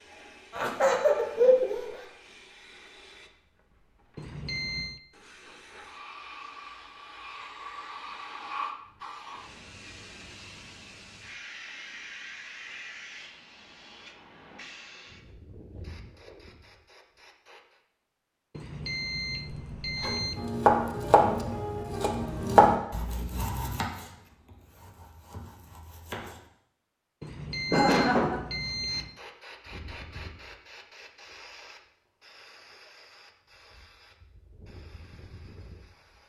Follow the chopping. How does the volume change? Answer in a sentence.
The loudness of the chopping goes down.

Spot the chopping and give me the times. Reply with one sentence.
The chopping can be heard from 20.1 to 26.4 s.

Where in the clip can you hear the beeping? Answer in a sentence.
You can hear the beeping from 4.2 to 5.0 s, from 18.5 to 20.4 s and from 27.2 to 29.2 s.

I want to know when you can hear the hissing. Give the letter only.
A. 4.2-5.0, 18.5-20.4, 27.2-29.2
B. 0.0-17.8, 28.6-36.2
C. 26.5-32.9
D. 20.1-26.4
B.